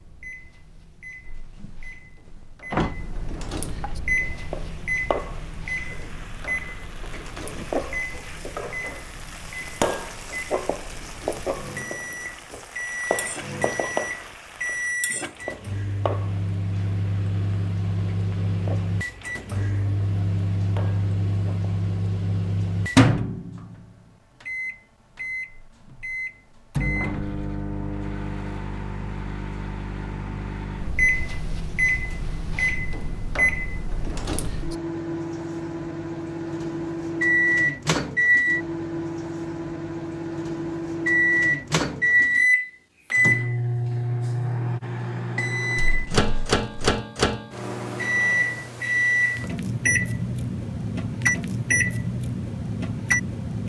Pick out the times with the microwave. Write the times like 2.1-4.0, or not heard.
0.0-53.6.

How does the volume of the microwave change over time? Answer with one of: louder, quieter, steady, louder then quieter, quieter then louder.
louder.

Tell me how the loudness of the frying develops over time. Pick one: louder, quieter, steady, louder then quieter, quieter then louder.
louder then quieter.